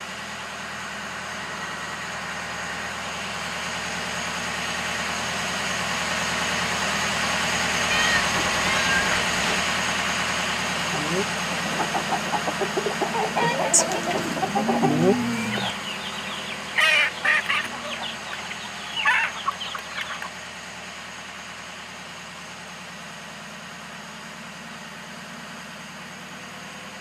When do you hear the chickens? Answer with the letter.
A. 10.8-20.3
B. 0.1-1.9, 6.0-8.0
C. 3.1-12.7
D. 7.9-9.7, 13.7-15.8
A.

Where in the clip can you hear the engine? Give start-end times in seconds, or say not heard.
0.0-26.9.